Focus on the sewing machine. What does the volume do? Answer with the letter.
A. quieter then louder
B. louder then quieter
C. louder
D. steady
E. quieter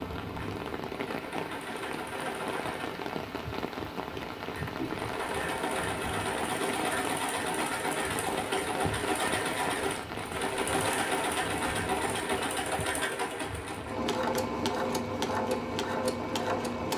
C.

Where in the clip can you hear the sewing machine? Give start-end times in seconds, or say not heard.
0.0-16.9.